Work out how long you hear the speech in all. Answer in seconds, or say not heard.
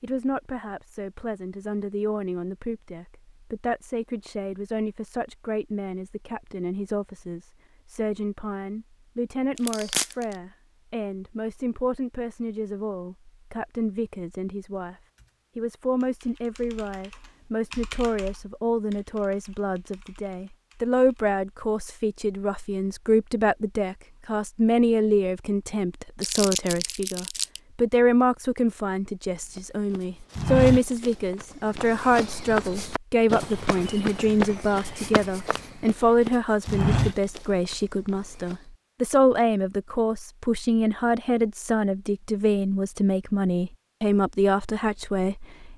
45 s.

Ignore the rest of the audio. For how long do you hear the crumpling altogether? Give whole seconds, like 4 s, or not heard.
2 s.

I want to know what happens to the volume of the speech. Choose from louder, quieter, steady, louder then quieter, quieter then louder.
louder.